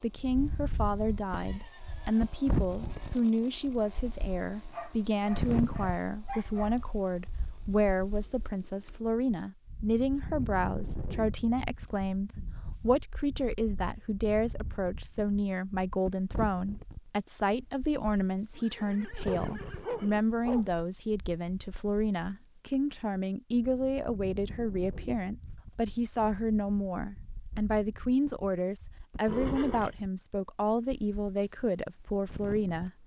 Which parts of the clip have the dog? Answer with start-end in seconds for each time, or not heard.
4.7-6.8, 19.2-20.8.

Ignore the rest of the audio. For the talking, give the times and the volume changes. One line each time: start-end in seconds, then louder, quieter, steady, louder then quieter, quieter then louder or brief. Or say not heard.
0.0-32.9 steady.